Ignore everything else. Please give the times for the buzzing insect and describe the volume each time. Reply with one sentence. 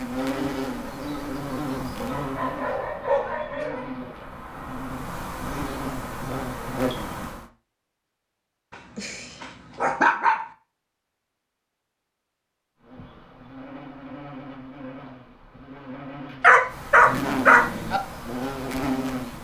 You can hear the buzzing insect from 0.0 to 7.5 s, getting quieter then louder; and from 12.8 to 19.4 s, getting louder.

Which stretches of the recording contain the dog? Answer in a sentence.
The dog can be heard from 2.0 to 4.3 s, from 8.7 to 10.5 s and from 16.4 to 18.0 s.